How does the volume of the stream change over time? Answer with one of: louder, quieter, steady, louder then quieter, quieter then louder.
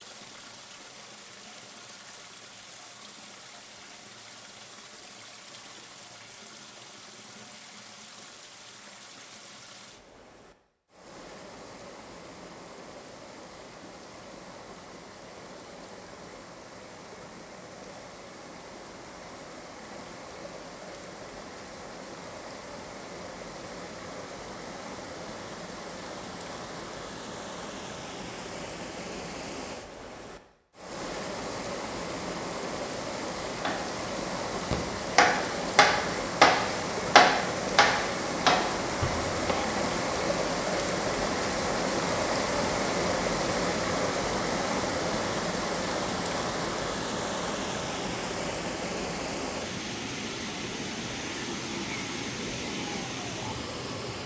louder.